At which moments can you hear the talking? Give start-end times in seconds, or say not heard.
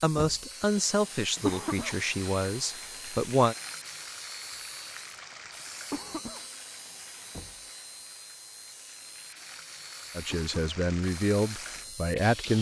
0.0-3.5, 10.2-12.5.